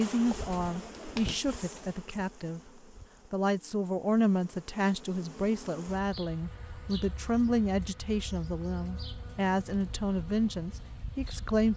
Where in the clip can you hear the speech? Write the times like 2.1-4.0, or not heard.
0.0-2.6, 3.3-11.7.